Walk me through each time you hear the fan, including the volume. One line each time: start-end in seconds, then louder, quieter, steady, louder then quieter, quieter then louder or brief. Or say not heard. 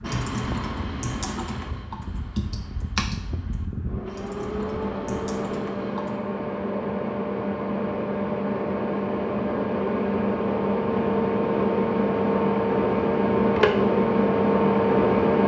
0.0-15.4 louder.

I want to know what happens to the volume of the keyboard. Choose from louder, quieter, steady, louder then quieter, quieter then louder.
quieter.